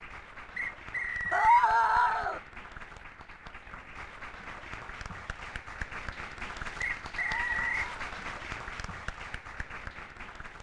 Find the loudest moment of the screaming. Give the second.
2 s.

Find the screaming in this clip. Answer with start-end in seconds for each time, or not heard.
1.3-2.4, 7.2-8.1.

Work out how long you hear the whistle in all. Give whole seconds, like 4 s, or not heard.
2 s.